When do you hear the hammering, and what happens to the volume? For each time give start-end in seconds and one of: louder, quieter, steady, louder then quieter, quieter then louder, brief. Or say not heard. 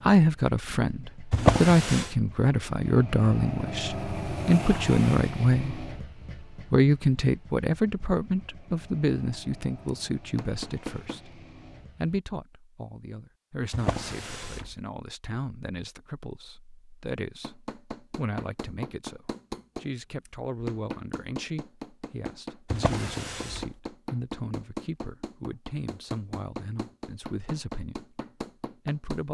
9.8-11.2 brief
17.4-29.3 steady.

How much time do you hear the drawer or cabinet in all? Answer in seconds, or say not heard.
3 s.